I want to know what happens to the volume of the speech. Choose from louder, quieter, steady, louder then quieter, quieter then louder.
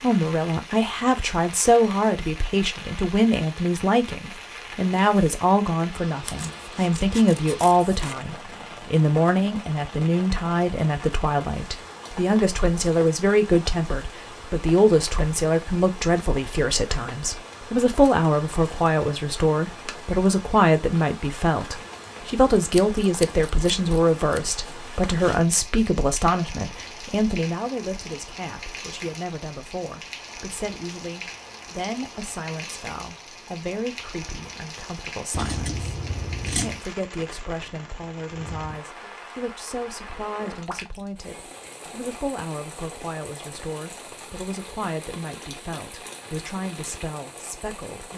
quieter.